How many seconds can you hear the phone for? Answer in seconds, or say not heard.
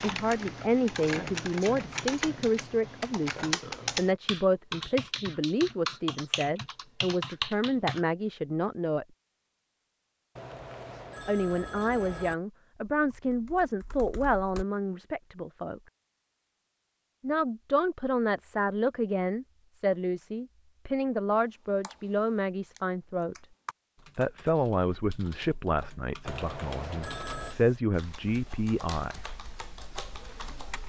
3 s.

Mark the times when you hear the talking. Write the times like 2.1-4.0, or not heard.
0.0-9.1, 11.2-15.8, 17.2-23.4, 24.1-29.4.